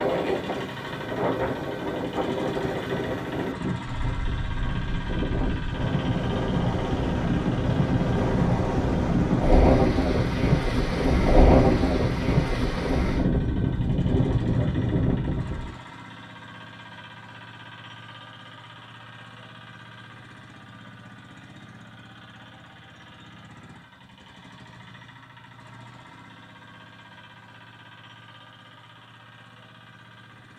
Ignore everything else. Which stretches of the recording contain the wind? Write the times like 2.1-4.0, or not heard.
0.0-15.7.